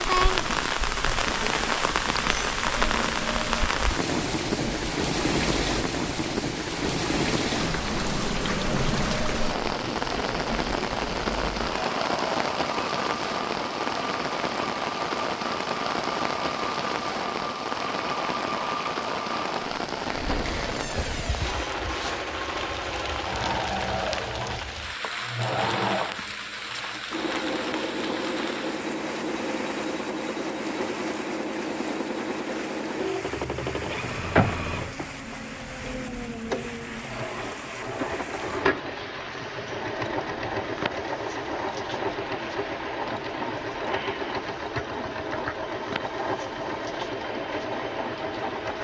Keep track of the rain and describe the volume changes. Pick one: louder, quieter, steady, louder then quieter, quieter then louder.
quieter.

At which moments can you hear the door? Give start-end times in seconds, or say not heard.
7.5-10.1, 20.4-21.8, 34.4-35.0.